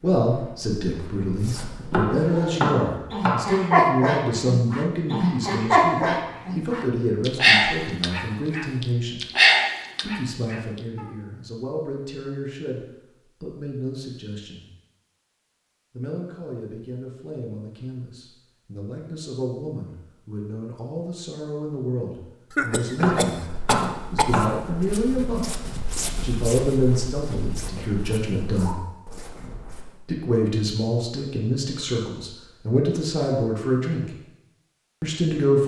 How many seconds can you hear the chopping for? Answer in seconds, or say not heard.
3 s.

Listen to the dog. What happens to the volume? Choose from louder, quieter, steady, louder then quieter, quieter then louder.
quieter then louder.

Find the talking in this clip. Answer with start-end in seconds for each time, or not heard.
0.0-9.2, 10.0-14.7, 15.9-28.8, 30.1-34.1, 35.0-35.6.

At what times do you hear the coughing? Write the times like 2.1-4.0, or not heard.
22.5-24.4.